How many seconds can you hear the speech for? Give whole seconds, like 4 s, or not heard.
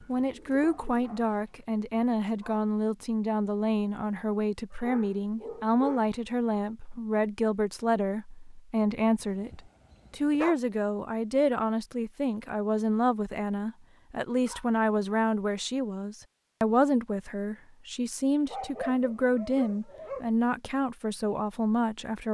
22 s.